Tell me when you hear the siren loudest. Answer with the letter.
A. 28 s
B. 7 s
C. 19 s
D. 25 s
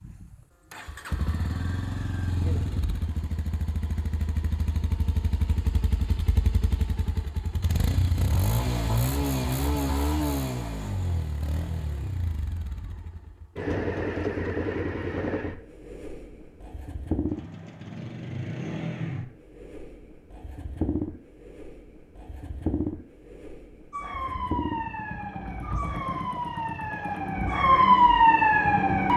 A.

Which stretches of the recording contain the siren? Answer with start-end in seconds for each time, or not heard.
23.9-29.1.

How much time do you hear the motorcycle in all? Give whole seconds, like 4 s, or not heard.
29 s.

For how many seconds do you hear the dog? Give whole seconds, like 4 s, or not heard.
not heard.